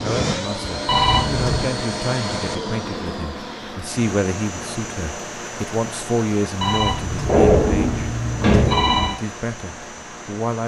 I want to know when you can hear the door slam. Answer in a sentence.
You can hear the door slam from 7.2 to 8.9 s.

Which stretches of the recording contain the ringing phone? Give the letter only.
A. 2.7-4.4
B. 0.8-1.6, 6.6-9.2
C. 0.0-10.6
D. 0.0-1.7
B.